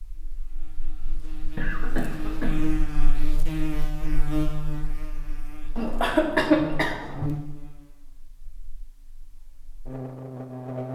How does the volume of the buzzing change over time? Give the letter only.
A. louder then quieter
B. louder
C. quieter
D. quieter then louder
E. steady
A.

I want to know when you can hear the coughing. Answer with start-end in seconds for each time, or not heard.
1.6-2.8, 5.8-7.3.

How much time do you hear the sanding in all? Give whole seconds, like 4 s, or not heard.
not heard.